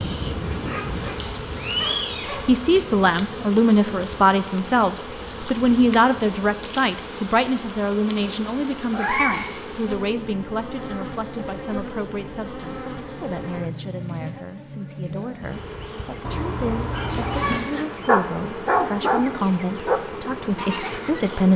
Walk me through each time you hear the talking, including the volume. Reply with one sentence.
You can hear the talking from 2.5 to 21.5 s, getting quieter then louder.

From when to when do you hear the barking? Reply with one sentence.
You can hear the barking from 0.0 to 2.5 s and from 16.9 to 21.4 s.